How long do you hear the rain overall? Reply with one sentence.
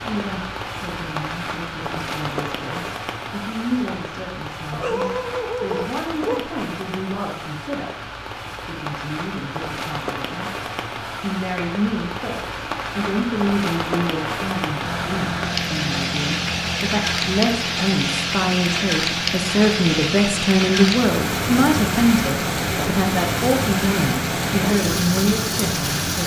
The rain can be heard for 26 seconds in total.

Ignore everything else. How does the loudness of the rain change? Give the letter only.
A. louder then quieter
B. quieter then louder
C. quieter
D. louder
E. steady
D.